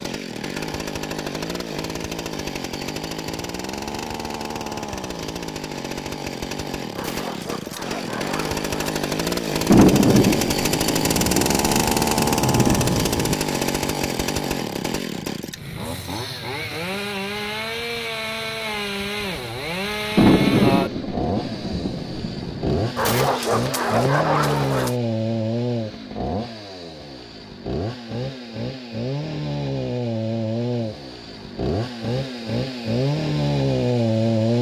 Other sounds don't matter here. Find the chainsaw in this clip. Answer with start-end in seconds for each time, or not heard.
0.0-34.5.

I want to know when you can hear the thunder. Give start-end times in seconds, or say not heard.
9.7-13.3, 20.1-22.9.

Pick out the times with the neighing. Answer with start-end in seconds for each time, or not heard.
not heard.